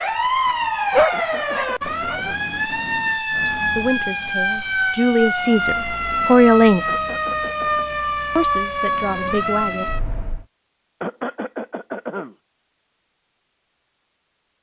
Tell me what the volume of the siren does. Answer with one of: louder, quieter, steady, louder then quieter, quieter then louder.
steady.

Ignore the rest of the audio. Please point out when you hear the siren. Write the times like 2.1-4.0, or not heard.
0.0-10.4.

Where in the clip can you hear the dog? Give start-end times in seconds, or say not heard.
0.5-2.2.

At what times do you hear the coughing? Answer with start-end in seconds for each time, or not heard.
1.1-2.5, 6.8-7.8, 11.0-12.3.